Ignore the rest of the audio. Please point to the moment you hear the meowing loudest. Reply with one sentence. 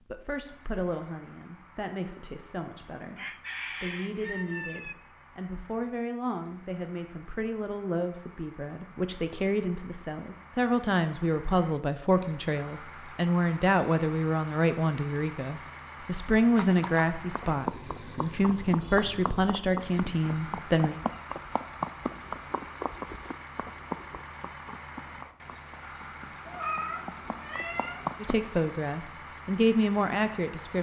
The volume of the meowing peaks at 27 seconds.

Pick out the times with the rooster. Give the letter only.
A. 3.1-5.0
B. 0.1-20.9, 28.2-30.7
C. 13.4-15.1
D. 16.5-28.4
A.